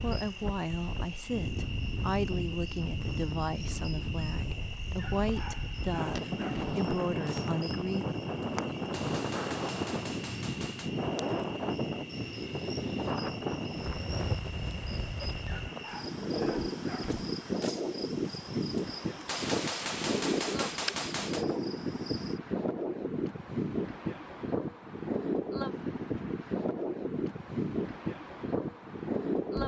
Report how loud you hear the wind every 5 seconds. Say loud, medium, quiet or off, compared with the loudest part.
medium, loud, loud, loud, loud, loud.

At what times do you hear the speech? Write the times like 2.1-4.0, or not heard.
0.0-8.1.